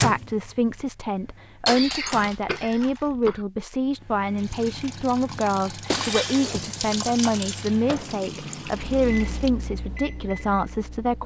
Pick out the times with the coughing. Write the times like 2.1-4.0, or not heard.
1.8-3.5.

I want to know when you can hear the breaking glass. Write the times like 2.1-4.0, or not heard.
1.6-3.0, 5.8-7.7.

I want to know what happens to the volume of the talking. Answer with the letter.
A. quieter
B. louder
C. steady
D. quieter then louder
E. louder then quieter
C.